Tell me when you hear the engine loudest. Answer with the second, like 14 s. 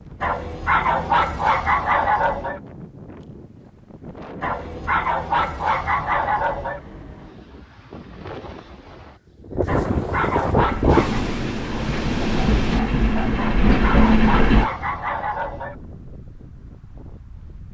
14 s.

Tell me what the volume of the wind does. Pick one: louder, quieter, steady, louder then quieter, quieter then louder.
louder then quieter.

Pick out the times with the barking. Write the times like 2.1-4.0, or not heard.
0.2-2.6, 4.4-6.8, 9.7-11.2, 13.3-15.8.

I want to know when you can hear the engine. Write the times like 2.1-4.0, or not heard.
10.6-14.7.